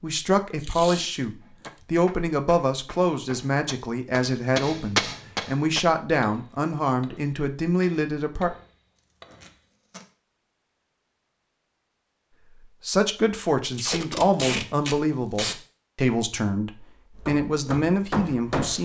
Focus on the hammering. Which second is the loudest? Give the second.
5 s.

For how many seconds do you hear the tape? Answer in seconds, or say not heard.
4 s.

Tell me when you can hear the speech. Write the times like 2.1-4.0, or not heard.
0.0-8.5, 12.3-18.8.